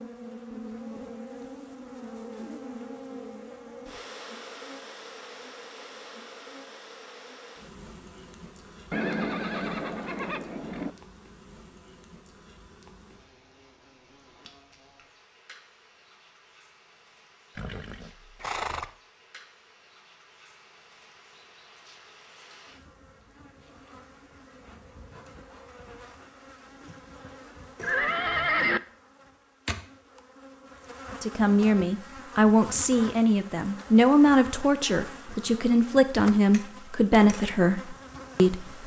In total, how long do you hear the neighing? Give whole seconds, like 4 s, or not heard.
4 s.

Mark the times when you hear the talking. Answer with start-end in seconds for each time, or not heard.
31.2-38.8.